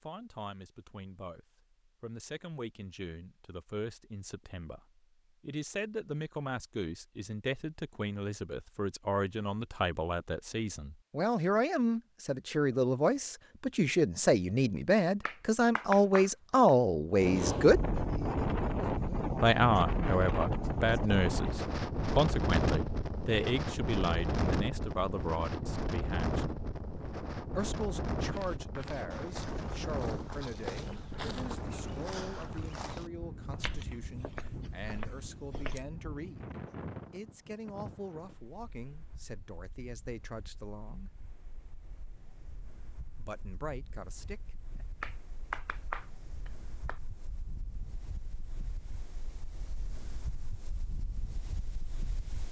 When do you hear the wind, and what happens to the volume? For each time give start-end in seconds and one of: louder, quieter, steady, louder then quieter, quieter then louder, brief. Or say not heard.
17.1-52.4 quieter then louder.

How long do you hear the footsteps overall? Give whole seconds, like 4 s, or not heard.
8 s.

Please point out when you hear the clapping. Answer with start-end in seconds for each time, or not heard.
15.2-16.7, 45.0-47.0.